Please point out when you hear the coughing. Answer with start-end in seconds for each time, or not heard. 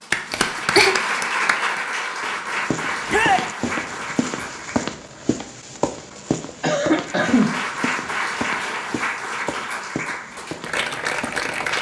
0.3-0.9, 6.6-7.5.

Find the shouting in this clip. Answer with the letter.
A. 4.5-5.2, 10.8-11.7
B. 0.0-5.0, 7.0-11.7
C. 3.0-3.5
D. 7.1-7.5
C.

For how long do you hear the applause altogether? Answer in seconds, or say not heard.
10 s.